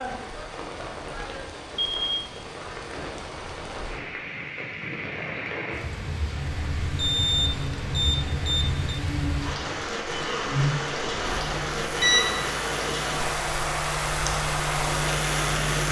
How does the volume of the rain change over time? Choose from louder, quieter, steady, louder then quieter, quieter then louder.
louder.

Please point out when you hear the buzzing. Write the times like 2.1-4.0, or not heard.
6.3-15.8.